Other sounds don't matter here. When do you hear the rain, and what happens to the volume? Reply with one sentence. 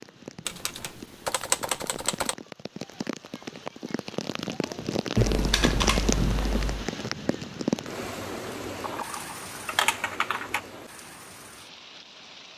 You can hear the rain from 0.0 to 12.5 s, getting louder then quieter.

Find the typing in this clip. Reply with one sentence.
You can hear the typing from 0.5 to 2.4 s, from 5.2 to 6.9 s and from 8.8 to 10.6 s.